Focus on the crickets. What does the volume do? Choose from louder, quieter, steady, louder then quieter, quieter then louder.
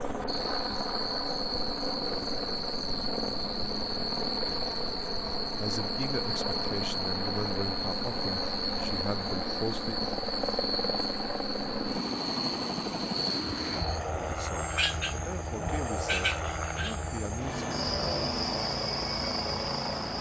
steady.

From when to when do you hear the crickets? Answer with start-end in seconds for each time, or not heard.
0.0-20.1.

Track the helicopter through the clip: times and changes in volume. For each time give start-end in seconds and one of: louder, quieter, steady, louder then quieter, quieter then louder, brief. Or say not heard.
0.0-20.1 steady.